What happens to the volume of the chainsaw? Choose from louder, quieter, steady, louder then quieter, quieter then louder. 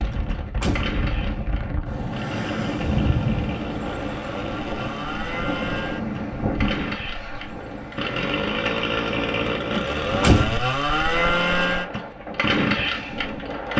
louder.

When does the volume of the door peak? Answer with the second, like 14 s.
10 s.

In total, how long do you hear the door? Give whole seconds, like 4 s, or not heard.
2 s.